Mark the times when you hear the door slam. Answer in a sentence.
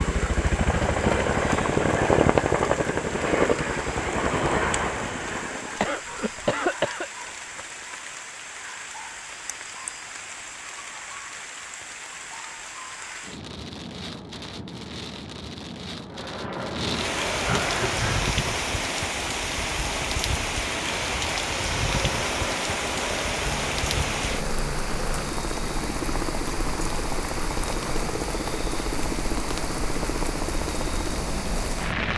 The door slam can't be heard in this clip.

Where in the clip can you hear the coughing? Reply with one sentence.
The coughing can be heard from 5.8 to 7.1 s and from 17.4 to 18.2 s.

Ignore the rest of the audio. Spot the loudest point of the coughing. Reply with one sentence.
The loudest moment of the coughing is at 7 seconds.